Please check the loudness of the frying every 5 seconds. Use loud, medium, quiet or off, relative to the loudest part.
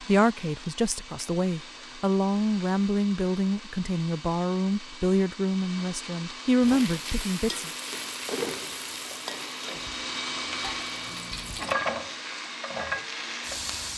off, loud, loud.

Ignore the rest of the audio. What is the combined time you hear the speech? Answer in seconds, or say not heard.
8 s.